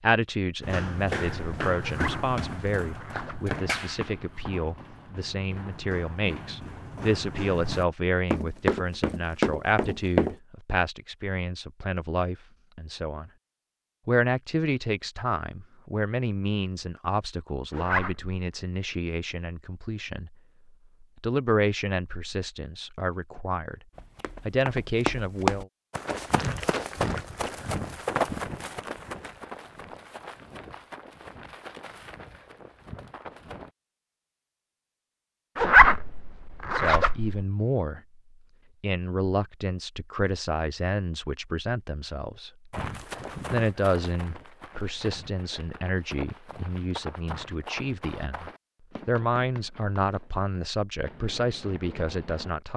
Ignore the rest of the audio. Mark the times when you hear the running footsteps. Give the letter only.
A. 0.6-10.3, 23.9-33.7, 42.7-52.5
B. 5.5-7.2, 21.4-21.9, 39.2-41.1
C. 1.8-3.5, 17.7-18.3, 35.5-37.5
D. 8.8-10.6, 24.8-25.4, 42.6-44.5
A.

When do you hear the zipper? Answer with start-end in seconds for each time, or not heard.
1.8-3.5, 17.7-18.3, 35.5-37.5.